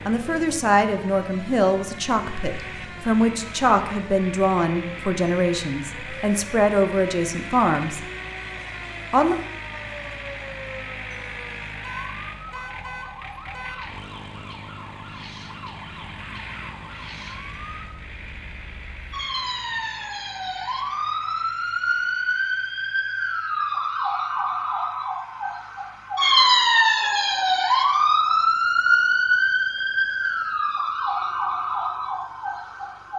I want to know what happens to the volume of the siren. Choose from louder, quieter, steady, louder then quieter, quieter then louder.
louder.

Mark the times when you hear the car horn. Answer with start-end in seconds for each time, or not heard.
11.8-13.8.